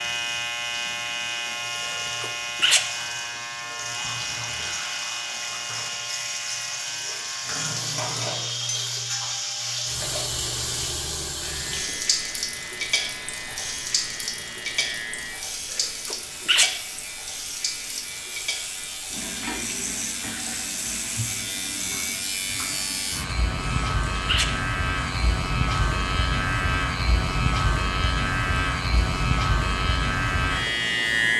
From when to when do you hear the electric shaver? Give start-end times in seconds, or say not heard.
0.0-31.3.